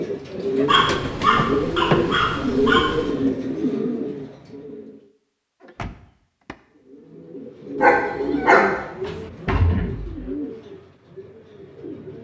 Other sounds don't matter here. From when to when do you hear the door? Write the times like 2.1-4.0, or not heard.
1.3-2.2, 5.6-6.5, 9.1-10.3.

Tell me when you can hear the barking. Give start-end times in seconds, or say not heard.
0.7-3.1, 7.8-8.8.